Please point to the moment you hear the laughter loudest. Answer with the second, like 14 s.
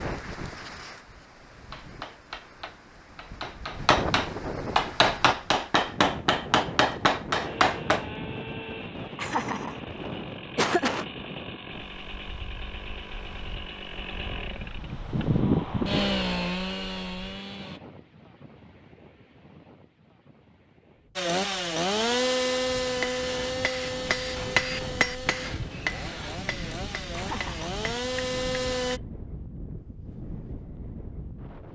11 s.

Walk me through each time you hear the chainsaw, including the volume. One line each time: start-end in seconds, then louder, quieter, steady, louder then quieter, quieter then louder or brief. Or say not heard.
7.4-17.8 louder
21.1-29.0 quieter then louder.